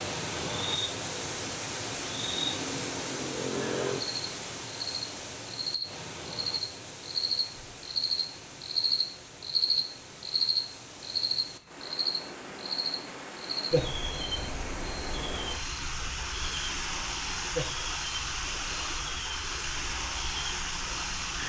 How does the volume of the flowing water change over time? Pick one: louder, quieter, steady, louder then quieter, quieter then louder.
quieter then louder.